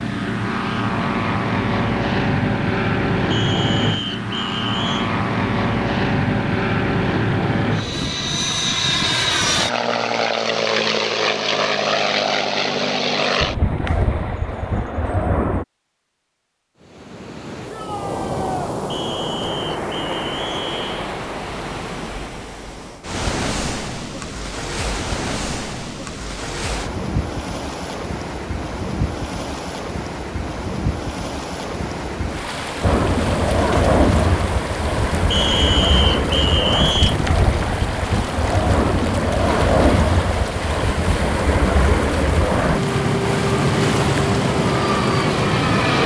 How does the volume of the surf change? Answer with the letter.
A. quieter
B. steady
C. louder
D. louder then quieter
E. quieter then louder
B.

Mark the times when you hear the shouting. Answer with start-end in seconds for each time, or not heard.
17.7-18.8.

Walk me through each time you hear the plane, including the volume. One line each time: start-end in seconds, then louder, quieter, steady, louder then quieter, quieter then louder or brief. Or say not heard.
0.0-15.7 steady
32.8-46.0 steady.